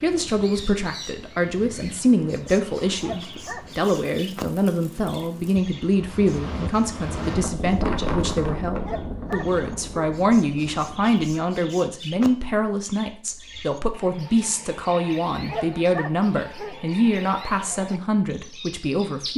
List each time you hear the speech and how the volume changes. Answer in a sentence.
You can hear the speech from 0.0 to 19.3 s, at a steady volume.